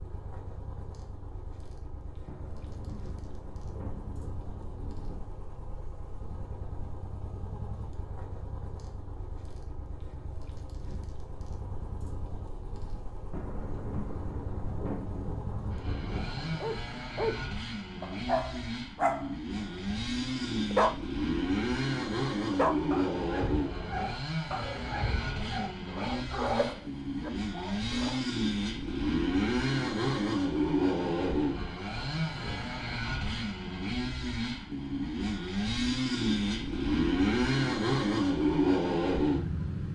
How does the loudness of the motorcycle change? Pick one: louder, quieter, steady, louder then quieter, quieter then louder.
louder.